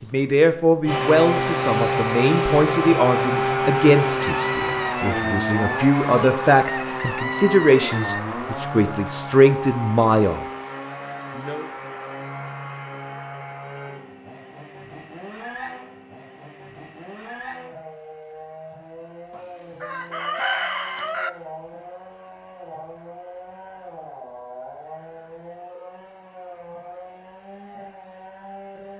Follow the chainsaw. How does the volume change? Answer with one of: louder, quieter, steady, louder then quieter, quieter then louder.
quieter.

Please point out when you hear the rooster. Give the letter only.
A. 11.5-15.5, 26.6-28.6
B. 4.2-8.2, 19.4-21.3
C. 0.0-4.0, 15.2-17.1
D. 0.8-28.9
B.